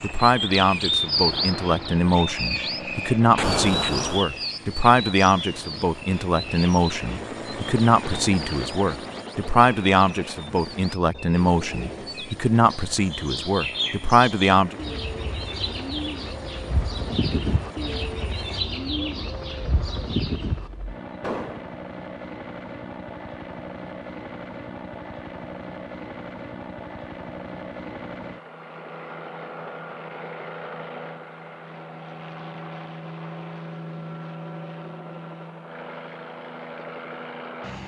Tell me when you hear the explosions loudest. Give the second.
4 s.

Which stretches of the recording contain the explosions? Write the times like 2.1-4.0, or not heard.
3.4-4.2, 21.2-21.6.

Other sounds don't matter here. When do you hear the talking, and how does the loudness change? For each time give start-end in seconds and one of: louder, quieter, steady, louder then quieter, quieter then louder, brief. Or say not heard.
0.0-14.8 steady.